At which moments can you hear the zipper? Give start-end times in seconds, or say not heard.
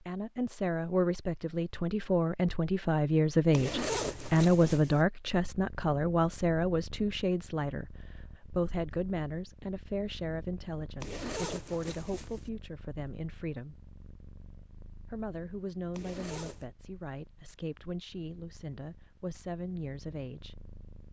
3.5-5.0, 11.0-12.5, 15.9-16.6.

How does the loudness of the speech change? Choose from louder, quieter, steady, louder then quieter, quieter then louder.
quieter.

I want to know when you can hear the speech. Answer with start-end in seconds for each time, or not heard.
0.0-13.8, 15.1-20.6.